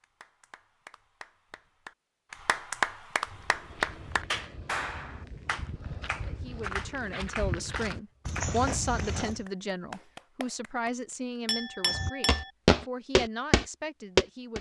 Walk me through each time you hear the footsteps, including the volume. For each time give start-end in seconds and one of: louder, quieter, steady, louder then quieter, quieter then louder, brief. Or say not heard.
3.2-9.4 louder
11.9-14.5 brief.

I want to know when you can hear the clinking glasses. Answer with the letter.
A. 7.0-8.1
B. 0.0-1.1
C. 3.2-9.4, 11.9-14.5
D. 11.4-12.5
D.